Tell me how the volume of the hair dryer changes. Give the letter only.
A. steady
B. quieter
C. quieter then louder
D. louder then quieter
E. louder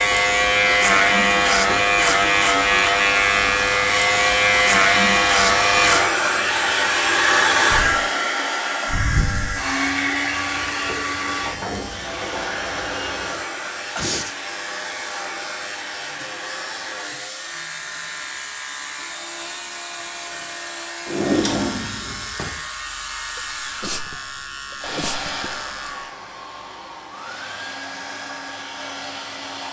B.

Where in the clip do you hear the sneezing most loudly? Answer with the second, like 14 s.
14 s.